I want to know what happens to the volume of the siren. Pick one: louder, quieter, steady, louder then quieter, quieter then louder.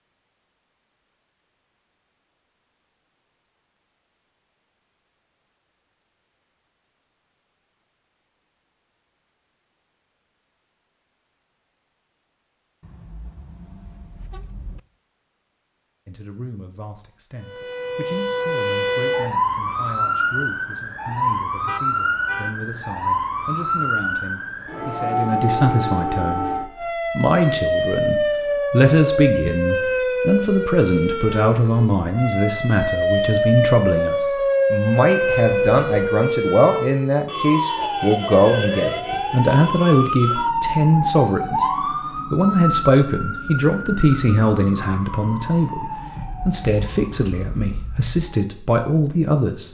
quieter.